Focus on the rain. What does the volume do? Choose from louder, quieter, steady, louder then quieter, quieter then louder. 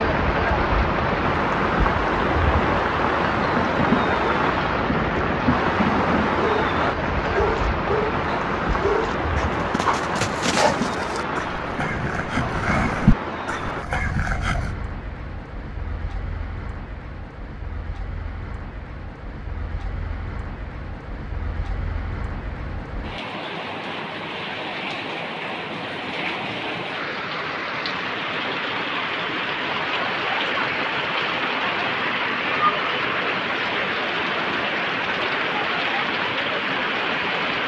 quieter then louder.